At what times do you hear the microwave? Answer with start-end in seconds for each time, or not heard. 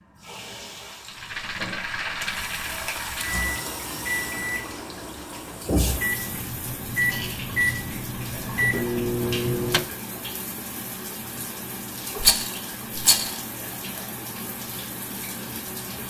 3.1-10.3.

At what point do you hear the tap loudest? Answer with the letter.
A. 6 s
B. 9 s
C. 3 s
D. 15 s
A.